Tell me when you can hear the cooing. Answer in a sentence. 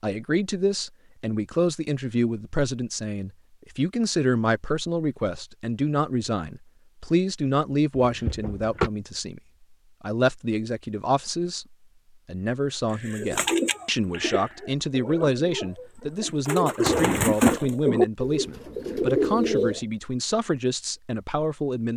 You can hear the cooing from 12.9 to 19.8 s.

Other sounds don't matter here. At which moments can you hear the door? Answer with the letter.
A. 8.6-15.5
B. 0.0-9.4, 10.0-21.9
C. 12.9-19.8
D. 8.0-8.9
D.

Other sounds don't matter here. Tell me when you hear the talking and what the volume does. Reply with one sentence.
The talking can be heard from 0.0 to 9.4 s, at a steady volume; and from 10.0 to 21.9 s, at a steady volume.